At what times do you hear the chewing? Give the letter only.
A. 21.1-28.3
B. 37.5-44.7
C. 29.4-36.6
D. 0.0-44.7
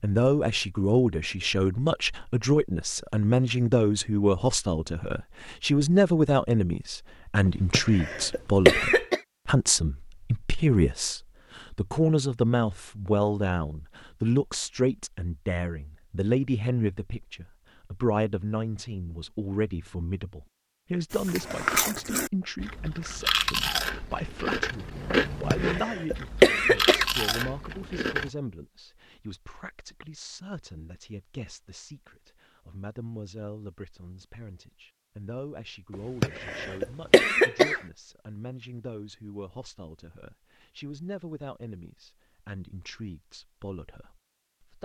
A.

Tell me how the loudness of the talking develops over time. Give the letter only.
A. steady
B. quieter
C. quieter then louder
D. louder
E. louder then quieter
B.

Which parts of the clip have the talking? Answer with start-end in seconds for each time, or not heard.
0.0-44.7.